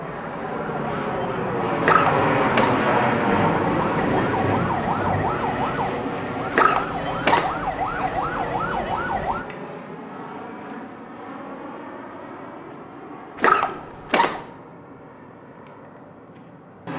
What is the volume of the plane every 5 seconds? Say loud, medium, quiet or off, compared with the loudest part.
loud, medium, quiet, quiet.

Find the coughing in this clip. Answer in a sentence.
You can hear the coughing from 1.8 to 2.8 s, from 6.5 to 7.5 s and from 13.3 to 14.4 s.